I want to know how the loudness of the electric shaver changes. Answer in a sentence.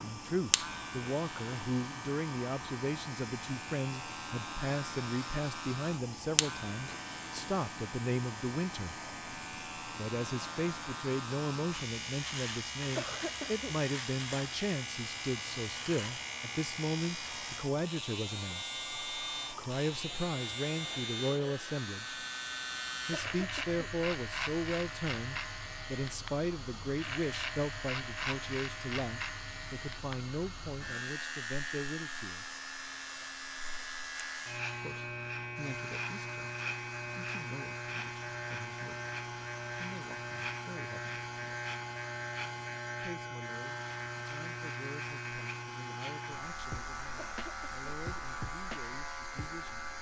The volume of the electric shaver stays about the same.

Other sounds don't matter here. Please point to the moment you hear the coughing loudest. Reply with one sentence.
The volume of the coughing peaks at 13 seconds.